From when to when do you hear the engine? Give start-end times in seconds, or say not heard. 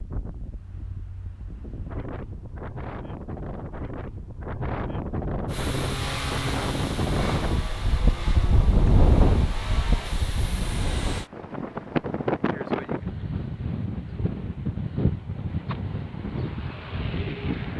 5.5-11.3.